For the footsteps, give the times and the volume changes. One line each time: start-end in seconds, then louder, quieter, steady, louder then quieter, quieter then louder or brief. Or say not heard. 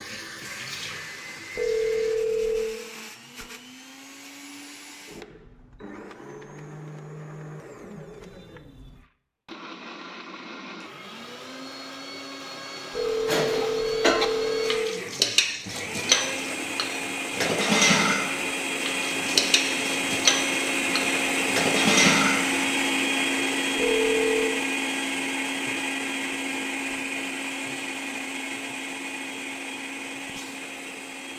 not heard.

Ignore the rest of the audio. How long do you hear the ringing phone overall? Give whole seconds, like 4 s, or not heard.
4 s.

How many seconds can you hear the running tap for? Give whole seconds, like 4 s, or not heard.
2 s.